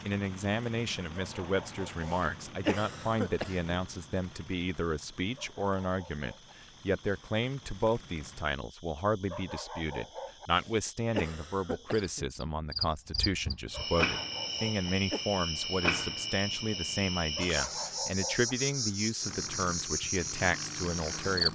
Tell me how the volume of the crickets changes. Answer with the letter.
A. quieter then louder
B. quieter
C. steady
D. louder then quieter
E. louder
E.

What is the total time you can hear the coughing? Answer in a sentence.
The coughing can be heard for 4 seconds in total.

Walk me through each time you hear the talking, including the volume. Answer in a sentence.
You can hear the talking from 0.0 to 21.4 s, at a steady volume.